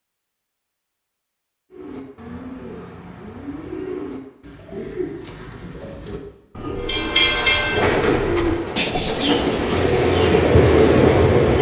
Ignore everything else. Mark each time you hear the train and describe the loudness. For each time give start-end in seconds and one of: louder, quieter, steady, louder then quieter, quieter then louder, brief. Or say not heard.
6.8-11.5 quieter then louder.